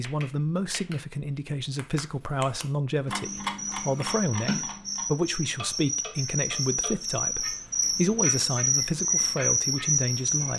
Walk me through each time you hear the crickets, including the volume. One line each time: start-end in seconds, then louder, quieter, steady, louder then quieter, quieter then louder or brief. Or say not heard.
3.2-10.5 louder.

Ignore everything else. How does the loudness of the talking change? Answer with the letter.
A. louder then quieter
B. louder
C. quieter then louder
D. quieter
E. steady
E.